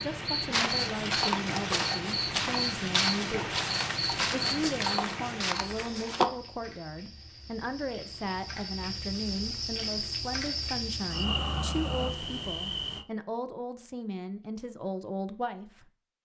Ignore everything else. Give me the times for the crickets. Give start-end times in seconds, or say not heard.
0.0-13.1.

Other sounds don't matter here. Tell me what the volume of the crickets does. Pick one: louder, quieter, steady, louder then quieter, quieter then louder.
quieter then louder.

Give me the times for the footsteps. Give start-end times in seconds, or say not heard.
0.5-6.3.